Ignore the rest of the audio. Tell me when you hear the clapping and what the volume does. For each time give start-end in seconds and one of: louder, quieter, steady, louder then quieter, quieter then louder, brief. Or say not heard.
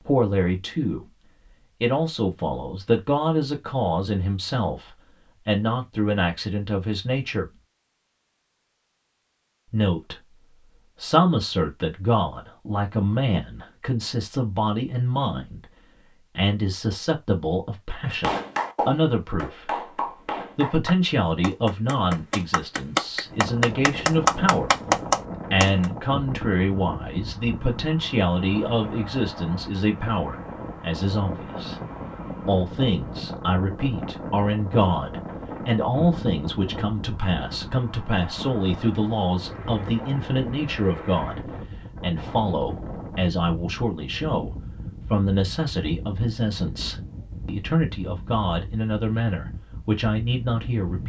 18.2-25.9 louder.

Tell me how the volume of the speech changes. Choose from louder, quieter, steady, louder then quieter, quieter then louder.
steady.